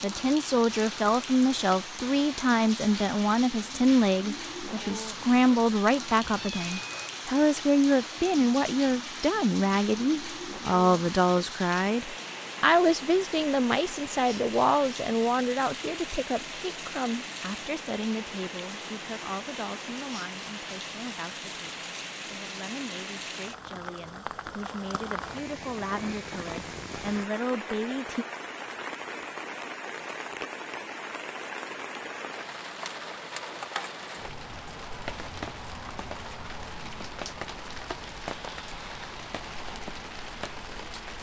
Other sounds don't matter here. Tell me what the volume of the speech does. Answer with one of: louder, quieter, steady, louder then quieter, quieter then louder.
quieter.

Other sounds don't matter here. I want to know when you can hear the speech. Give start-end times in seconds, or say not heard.
0.0-28.2.